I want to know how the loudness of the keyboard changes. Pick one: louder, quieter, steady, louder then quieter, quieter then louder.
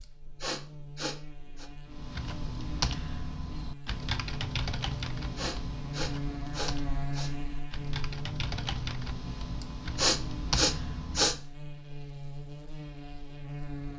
quieter then louder.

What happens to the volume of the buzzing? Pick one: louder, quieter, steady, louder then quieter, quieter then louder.
louder then quieter.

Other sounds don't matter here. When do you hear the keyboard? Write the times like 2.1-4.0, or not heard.
1.9-11.4.